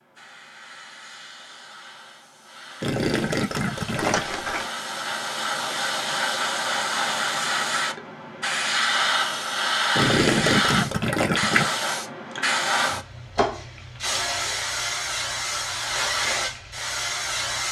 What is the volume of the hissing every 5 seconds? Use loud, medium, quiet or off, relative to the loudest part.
quiet, loud, loud, loud.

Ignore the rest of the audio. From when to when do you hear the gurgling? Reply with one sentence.
The gurgling can be heard from 2.8 to 4.3 s and from 9.9 to 11.7 s.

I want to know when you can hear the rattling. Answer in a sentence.
The rattling can be heard from 4.0 to 4.7 s.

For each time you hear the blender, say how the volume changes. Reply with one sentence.
The blender can't be heard in this clip.